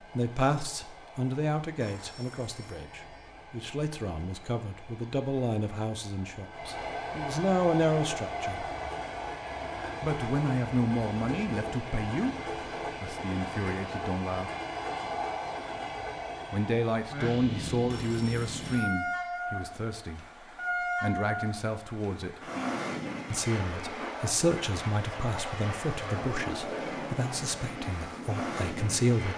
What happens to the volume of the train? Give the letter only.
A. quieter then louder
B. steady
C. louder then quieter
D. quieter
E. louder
E.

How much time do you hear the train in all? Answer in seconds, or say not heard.
29 s.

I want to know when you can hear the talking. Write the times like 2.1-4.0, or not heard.
0.1-8.8, 10.0-12.3, 13.0-14.5, 16.5-20.2, 21.0-22.4, 23.3-29.3.